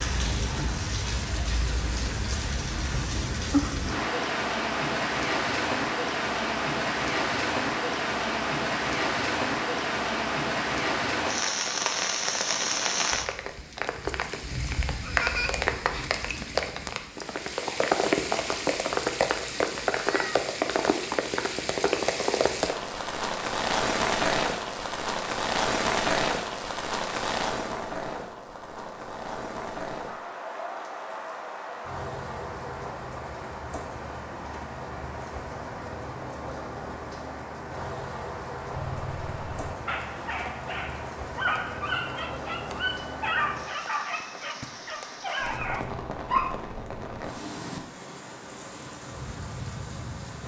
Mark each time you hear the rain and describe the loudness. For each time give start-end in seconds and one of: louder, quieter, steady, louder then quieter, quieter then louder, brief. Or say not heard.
0.0-50.4 quieter.